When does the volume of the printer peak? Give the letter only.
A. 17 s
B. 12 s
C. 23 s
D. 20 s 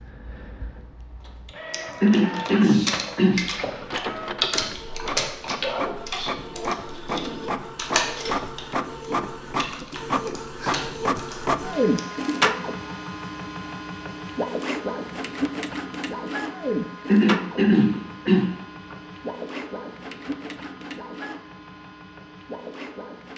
B.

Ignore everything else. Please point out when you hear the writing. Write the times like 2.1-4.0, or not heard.
not heard.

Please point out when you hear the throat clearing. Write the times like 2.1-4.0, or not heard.
2.0-3.9, 17.1-18.9.